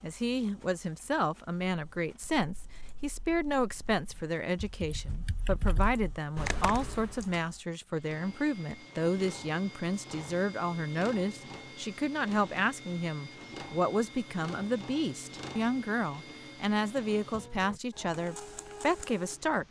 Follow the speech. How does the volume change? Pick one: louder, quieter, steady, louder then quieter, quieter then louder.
steady.